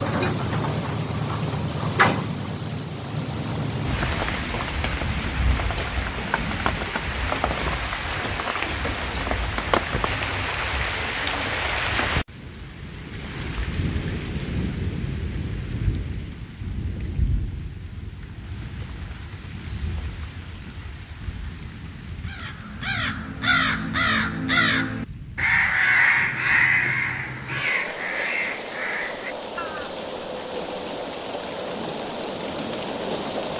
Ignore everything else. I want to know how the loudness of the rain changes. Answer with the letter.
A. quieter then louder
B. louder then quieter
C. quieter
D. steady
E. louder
A.